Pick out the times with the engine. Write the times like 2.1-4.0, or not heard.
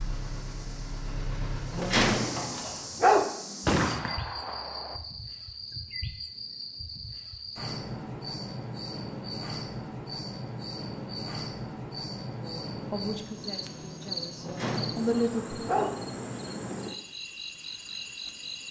0.0-2.9.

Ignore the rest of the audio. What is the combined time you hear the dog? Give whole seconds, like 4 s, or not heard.
3 s.